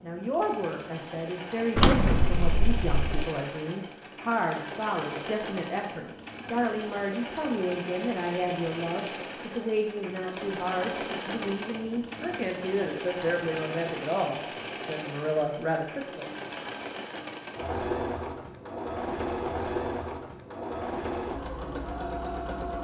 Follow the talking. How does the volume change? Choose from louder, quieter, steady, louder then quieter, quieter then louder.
steady.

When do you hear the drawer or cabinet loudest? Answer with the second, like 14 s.
2 s.